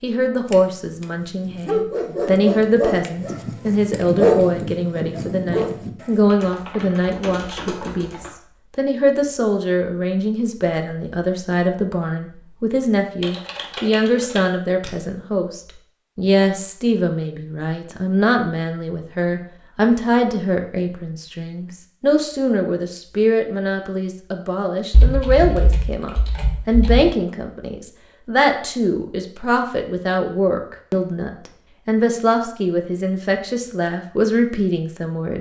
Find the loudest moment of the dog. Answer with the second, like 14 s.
4 s.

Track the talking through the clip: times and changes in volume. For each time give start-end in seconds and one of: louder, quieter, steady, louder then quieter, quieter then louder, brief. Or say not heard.
0.0-35.3 steady.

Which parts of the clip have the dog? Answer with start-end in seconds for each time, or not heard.
0.5-6.2.